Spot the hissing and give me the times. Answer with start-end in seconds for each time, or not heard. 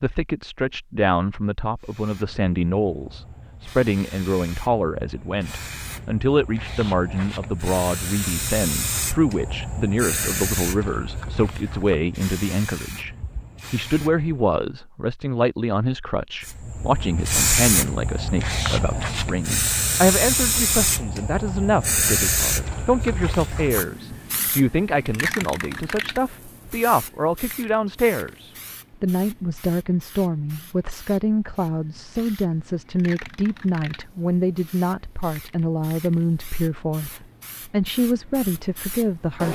1.8-14.5, 16.4-39.5.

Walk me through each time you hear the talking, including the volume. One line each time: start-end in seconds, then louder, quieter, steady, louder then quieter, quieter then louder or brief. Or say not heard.
0.0-39.5 steady.